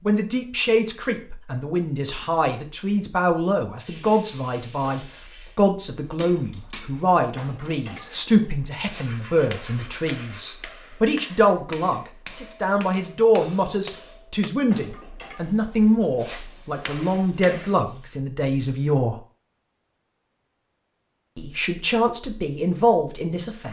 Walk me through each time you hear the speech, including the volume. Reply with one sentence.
You can hear the speech from 0.1 to 19.2 s, at a steady volume; and briefly from 21.4 to 23.6 s.